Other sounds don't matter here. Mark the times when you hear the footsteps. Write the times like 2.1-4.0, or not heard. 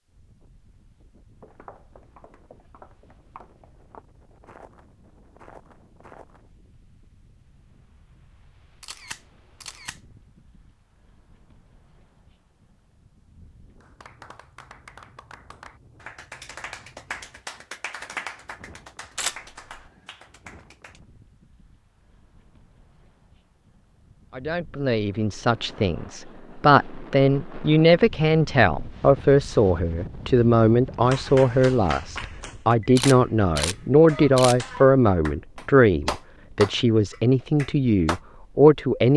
1.4-6.5.